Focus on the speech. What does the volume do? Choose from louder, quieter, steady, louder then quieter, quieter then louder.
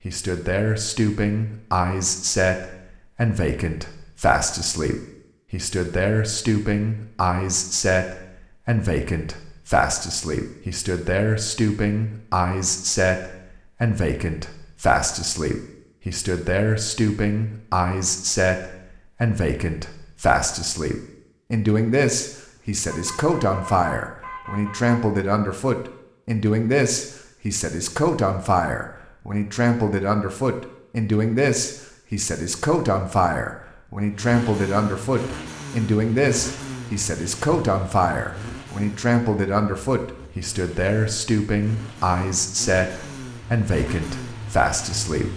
steady.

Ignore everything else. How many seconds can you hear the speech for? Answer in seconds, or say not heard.
45 s.